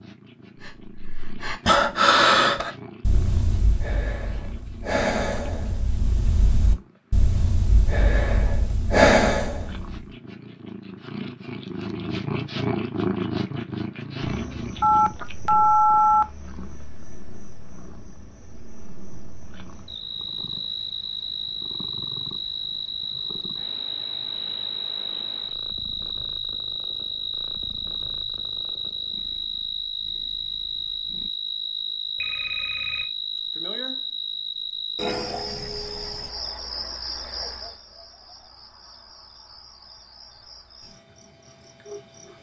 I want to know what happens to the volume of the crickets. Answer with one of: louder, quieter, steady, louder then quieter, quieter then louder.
louder then quieter.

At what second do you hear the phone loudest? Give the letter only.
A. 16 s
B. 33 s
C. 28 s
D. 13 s
A.